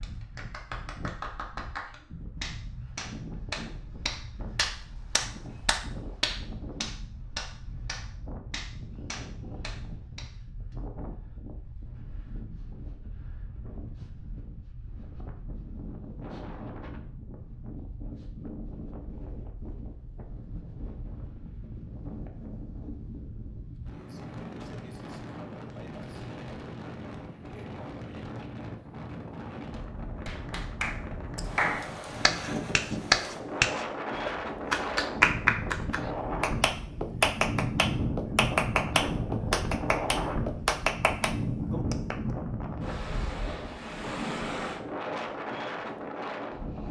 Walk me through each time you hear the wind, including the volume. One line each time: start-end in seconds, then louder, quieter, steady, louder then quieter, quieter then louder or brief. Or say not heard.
0.0-46.8 louder.